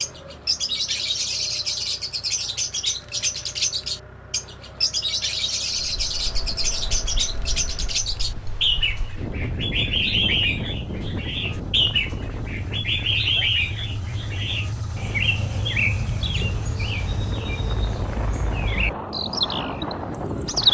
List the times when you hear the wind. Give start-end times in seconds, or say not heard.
6.0-20.6.